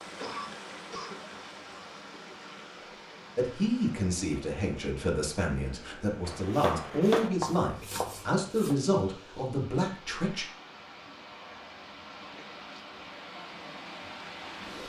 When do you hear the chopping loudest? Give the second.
7 s.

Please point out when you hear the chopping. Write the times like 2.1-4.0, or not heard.
6.2-8.8.